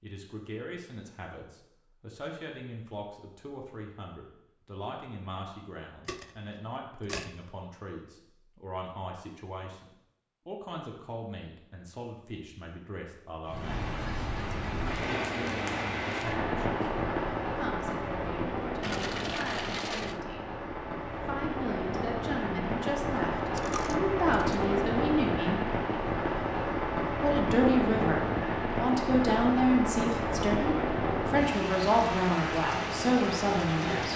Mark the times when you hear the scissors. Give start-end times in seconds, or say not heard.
not heard.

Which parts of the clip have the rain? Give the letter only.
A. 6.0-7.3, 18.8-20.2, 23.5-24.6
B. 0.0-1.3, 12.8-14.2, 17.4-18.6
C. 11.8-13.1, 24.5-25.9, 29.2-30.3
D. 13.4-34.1
D.